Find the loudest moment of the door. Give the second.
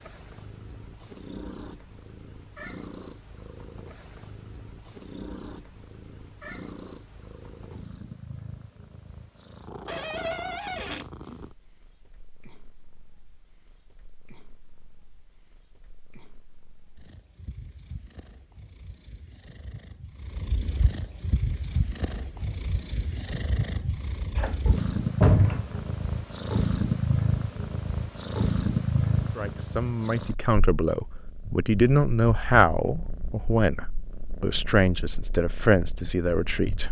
25 s.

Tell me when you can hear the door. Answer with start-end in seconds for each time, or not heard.
9.8-11.1, 24.4-25.8.